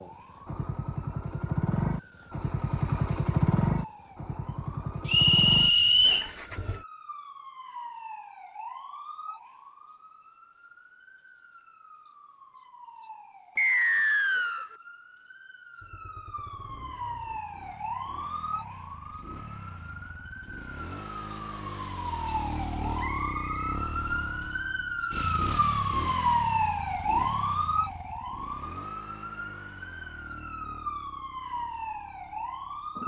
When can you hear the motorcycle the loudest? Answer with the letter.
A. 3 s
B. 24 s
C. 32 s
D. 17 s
A.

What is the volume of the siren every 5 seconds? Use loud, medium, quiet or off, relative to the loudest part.
quiet, quiet, quiet, medium, medium, loud, medium.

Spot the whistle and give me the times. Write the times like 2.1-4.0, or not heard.
5.0-6.2, 13.6-14.7, 22.9-23.8.